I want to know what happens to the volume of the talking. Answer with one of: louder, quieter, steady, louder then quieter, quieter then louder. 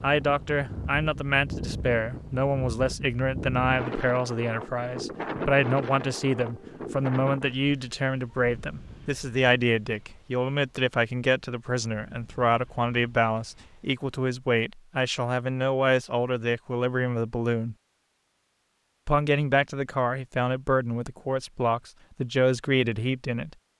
steady.